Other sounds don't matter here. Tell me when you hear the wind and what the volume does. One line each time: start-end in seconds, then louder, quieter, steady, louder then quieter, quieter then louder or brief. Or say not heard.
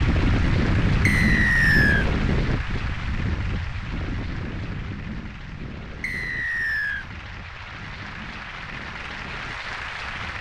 0.0-10.3 quieter.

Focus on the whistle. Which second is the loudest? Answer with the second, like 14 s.
2 s.